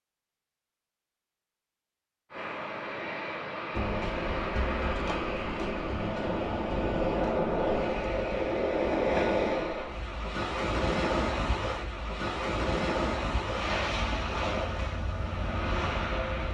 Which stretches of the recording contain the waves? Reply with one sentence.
You can hear the waves from 3.7 to 16.4 s.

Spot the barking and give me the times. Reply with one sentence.
The barking can't be heard in this clip.